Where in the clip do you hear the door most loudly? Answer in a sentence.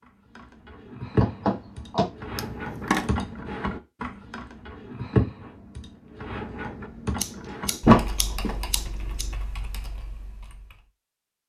The volume of the door peaks at 8 seconds.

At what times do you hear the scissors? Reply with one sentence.
You can hear the scissors from 2.4 to 3.1 s and from 7.2 to 9.3 s.